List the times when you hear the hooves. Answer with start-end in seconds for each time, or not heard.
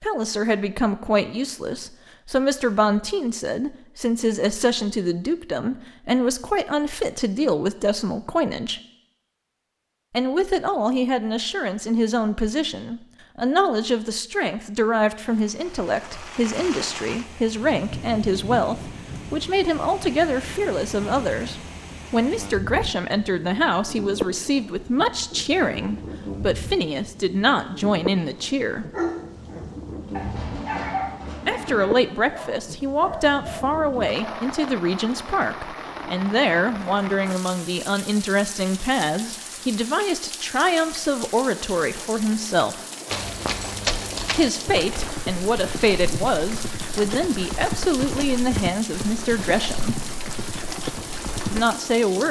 43.1-51.6.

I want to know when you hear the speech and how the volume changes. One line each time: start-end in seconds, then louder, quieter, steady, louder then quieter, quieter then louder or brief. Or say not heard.
0.0-8.8 steady
10.1-28.9 steady
31.4-42.9 steady
44.4-50.0 steady
51.5-52.2 brief.